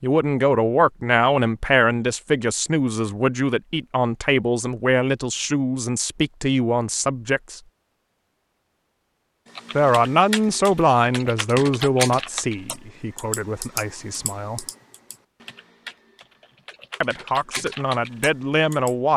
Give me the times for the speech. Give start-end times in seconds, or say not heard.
0.0-7.6, 9.8-14.7, 17.0-19.1.